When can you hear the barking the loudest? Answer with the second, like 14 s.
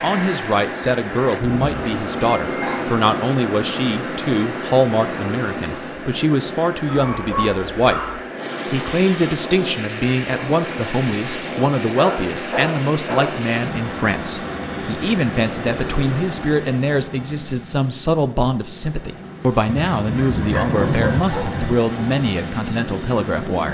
21 s.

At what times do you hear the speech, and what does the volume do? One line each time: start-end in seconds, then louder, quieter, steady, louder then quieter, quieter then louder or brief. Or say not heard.
0.0-23.6 steady.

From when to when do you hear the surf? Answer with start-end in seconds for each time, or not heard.
0.0-16.6.